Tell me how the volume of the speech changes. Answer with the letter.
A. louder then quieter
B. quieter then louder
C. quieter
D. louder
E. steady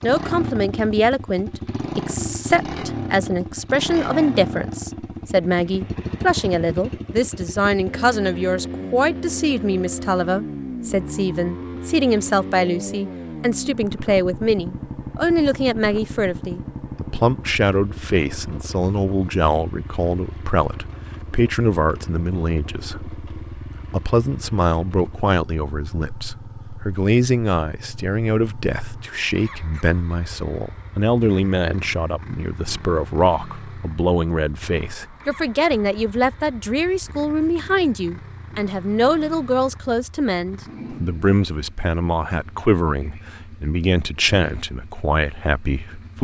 E.